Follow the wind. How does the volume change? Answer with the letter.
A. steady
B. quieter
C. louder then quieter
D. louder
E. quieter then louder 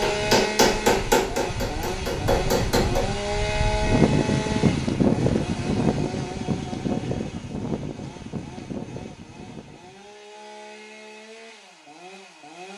C.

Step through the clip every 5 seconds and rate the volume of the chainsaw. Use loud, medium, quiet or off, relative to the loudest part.
loud, medium, quiet.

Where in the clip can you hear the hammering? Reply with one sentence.
The hammering can be heard from 0.0 to 3.0 s.